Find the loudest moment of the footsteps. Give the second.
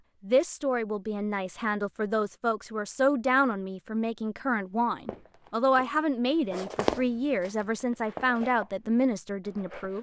7 s.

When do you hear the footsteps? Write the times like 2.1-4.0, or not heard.
5.0-9.9.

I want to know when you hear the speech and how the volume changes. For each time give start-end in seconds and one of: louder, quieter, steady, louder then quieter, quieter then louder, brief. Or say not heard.
0.2-9.9 steady.